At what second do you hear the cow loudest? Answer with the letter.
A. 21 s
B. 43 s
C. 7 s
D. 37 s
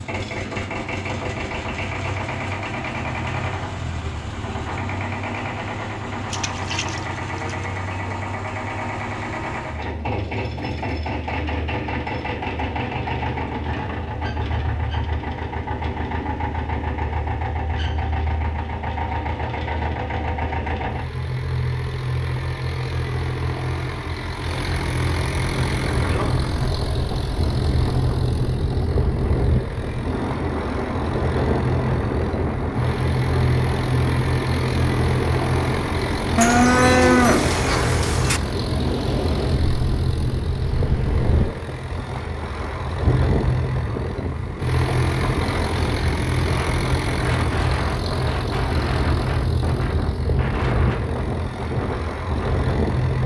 D.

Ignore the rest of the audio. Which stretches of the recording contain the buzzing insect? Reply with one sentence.
You can't hear the buzzing insect here.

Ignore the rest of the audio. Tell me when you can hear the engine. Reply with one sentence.
The engine can be heard from 0.0 to 53.2 s.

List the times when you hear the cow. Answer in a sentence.
You can hear the cow from 6.3 to 7.8 s and from 36.4 to 38.4 s.